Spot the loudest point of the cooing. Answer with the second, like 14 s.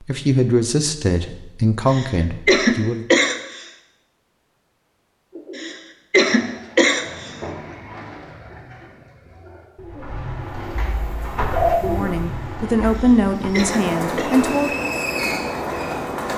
12 s.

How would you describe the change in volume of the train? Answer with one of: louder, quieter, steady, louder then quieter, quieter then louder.
louder.